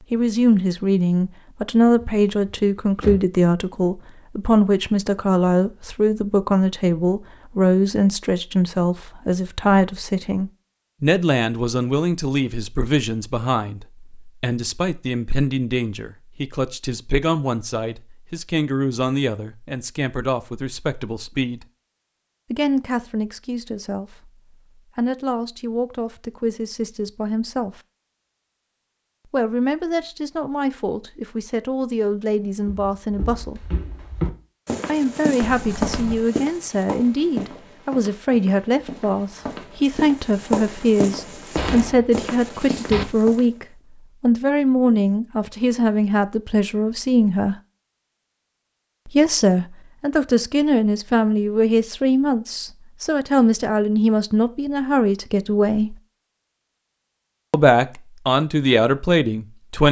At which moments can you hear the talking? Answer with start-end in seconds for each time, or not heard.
0.1-21.6, 22.5-27.8, 29.3-33.8, 34.9-47.5, 49.0-56.0, 57.5-59.8.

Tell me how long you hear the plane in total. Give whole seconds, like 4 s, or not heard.
not heard.